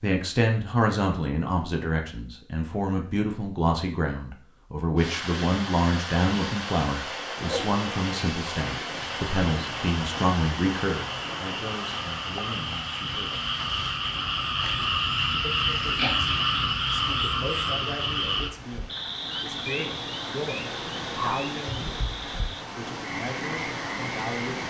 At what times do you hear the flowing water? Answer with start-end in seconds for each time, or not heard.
5.0-24.6.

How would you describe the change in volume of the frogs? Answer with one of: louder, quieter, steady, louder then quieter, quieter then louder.
louder then quieter.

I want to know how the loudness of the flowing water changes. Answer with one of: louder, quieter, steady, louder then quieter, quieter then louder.
quieter then louder.